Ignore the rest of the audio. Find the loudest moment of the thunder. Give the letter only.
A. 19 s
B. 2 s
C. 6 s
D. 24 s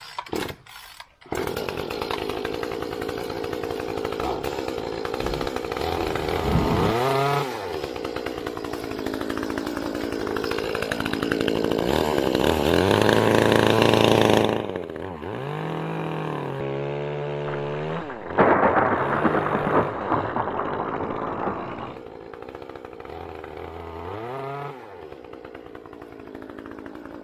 A.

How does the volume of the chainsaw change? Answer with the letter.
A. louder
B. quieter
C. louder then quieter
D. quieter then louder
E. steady
C.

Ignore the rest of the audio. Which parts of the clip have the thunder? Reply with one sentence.
You can hear the thunder from 5.2 to 7.0 s and from 17.4 to 21.9 s.